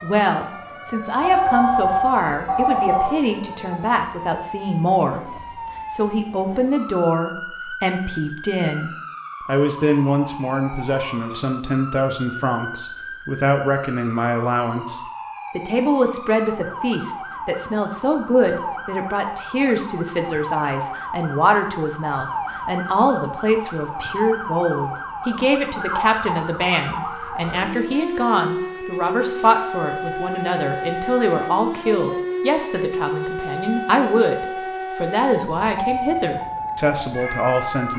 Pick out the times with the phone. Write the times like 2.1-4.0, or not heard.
1.2-3.1.